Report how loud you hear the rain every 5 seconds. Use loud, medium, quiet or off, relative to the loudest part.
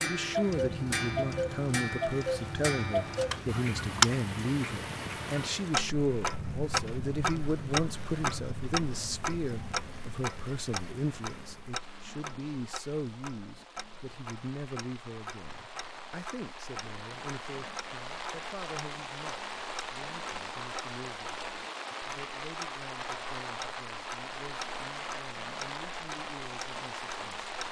loud, loud, medium, loud, loud, loud.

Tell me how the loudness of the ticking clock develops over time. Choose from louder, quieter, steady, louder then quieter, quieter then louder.
quieter.